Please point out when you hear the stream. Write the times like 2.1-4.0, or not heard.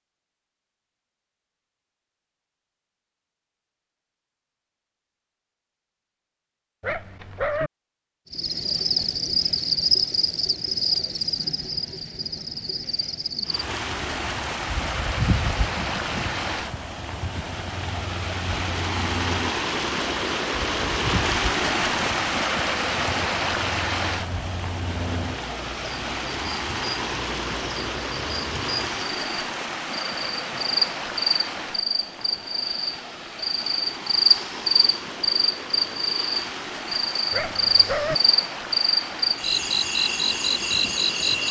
13.4-41.4.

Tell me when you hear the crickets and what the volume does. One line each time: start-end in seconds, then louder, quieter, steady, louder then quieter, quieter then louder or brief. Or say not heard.
8.3-41.4 quieter then louder.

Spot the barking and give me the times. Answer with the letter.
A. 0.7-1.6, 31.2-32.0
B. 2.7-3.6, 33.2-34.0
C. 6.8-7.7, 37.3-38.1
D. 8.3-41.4
C.